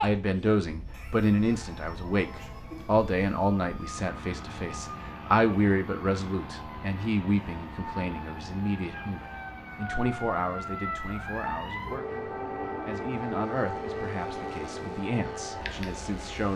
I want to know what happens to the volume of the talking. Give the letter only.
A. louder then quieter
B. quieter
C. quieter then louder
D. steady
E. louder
B.